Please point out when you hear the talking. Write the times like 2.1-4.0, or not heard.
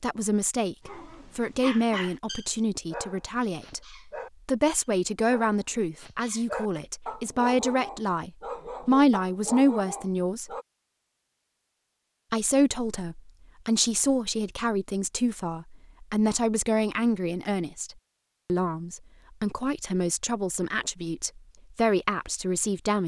0.0-10.5, 12.3-23.0.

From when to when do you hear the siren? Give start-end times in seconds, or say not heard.
not heard.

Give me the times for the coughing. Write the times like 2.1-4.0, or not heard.
not heard.